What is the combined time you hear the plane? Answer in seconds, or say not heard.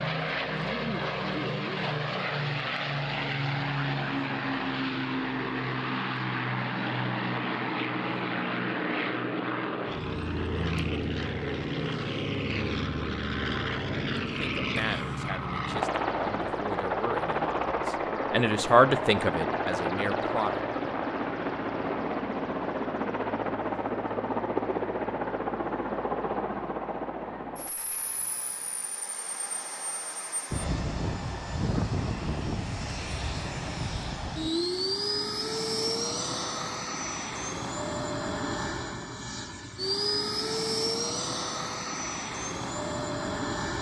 44 s.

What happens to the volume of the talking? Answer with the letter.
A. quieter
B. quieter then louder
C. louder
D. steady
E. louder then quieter
E.